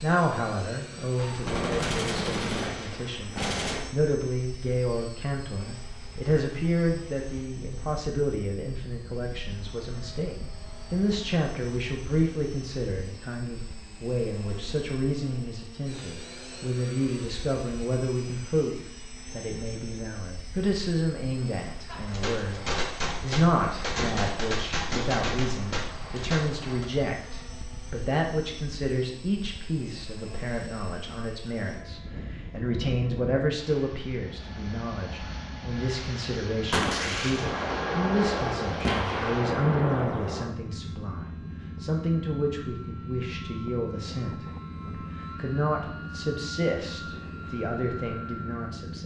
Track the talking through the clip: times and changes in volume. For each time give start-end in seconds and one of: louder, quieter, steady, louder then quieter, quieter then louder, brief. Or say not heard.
0.0-49.0 steady.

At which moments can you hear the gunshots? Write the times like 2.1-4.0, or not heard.
1.1-3.9, 21.9-26.9, 36.7-40.5.